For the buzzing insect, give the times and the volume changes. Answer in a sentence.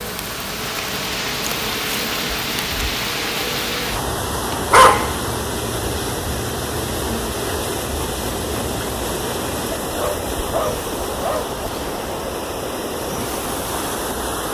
You can hear the buzzing insect from 0.0 to 14.5 s, at a steady volume.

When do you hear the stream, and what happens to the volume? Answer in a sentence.
The stream can be heard from 0.0 to 14.5 s, at a steady volume.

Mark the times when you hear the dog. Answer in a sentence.
You can hear the dog from 4.7 to 5.2 s and from 9.7 to 11.5 s.